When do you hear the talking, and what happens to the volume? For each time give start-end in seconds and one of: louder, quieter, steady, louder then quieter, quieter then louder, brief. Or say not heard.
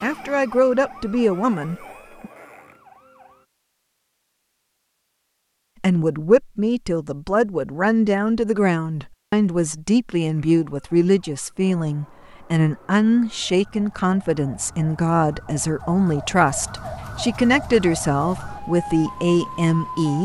0.0-2.3 brief
5.8-20.2 steady.